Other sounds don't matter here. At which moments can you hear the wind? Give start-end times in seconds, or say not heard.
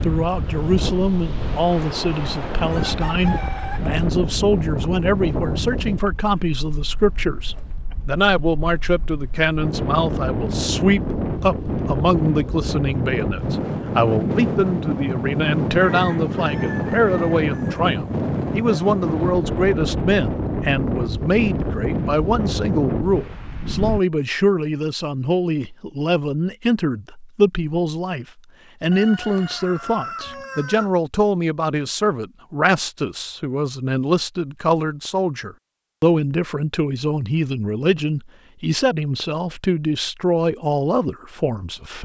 0.0-24.0.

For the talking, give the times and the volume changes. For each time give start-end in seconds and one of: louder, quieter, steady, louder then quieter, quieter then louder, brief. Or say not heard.
0.0-42.0 steady.